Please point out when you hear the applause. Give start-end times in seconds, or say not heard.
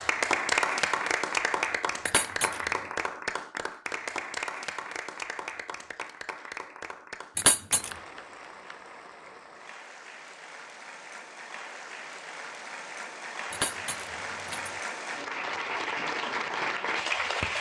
0.0-17.5.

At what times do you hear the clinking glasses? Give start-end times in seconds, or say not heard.
2.0-2.6, 7.3-7.9, 13.5-14.7.